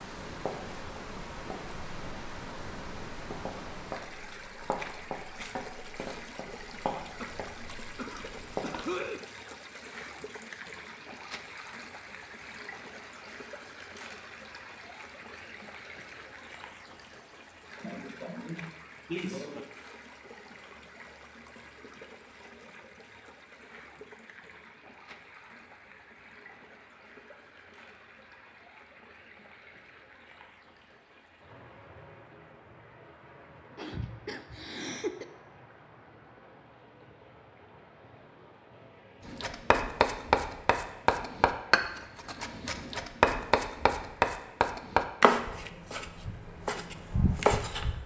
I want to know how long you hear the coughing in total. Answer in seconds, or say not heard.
5 s.